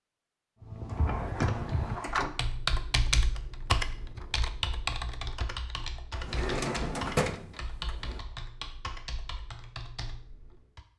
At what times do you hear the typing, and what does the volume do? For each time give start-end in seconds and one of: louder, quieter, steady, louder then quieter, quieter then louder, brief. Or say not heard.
0.6-10.8 quieter.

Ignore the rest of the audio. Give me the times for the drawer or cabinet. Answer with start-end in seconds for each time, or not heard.
0.9-2.4, 6.2-8.2.